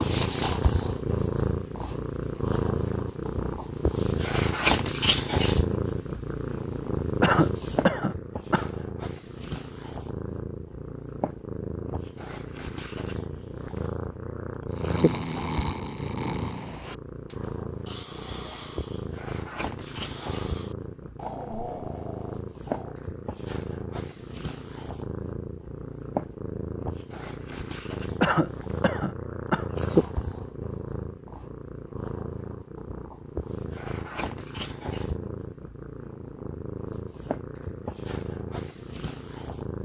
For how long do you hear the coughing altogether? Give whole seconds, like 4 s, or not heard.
3 s.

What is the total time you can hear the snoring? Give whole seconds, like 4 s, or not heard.
8 s.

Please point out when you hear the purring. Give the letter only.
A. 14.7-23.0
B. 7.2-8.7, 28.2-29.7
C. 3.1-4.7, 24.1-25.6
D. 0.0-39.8
D.